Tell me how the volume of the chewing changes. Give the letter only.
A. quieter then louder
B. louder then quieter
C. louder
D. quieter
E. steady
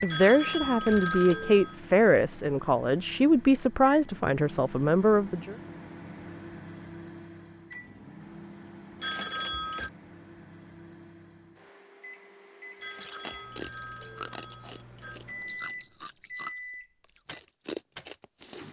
A.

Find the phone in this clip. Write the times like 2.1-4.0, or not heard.
0.1-1.8, 9.0-9.9, 12.8-15.2.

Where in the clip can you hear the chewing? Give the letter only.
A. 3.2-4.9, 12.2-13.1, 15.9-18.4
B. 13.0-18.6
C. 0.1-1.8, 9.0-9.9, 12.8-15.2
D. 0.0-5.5
B.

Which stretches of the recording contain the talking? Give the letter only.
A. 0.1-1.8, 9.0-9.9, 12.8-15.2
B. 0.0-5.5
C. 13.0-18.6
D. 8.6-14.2
B.